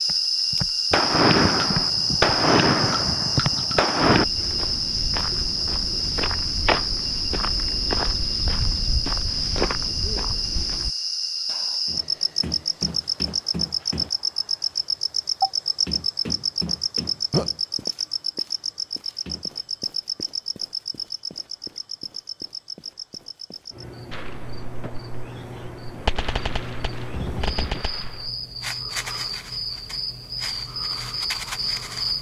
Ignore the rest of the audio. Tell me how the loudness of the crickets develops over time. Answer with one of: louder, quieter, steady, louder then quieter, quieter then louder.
quieter.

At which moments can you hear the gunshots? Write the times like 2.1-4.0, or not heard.
0.9-4.2, 24.1-28.3.